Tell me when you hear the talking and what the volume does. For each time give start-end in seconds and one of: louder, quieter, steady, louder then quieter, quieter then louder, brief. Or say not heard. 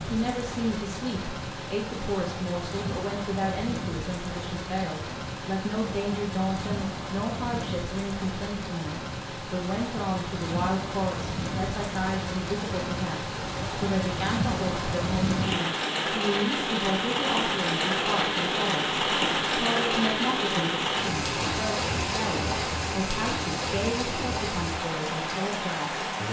0.1-26.2 steady.